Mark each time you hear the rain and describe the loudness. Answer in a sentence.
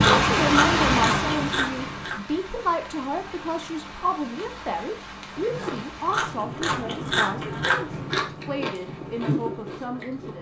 You can hear the rain from 0.0 to 6.5 s, getting quieter.